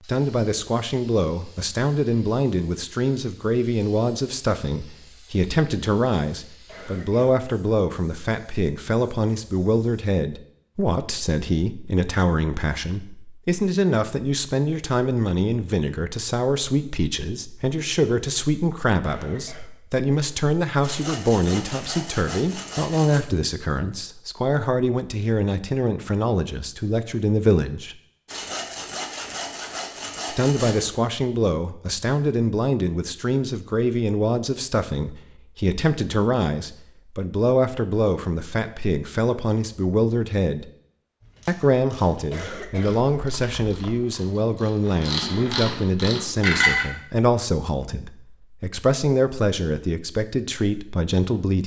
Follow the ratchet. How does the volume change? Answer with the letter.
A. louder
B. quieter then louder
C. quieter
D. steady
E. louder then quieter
A.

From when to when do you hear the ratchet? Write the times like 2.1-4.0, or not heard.
41.2-46.9.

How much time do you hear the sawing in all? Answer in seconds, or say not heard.
5 s.